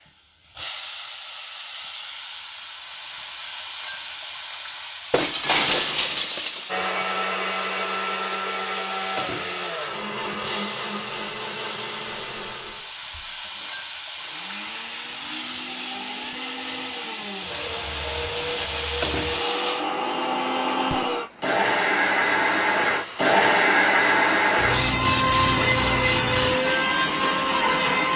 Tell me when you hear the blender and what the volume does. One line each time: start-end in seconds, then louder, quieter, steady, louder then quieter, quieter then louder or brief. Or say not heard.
6.7-28.1 quieter then louder.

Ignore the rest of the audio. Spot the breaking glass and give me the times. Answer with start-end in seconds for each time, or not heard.
5.1-6.8.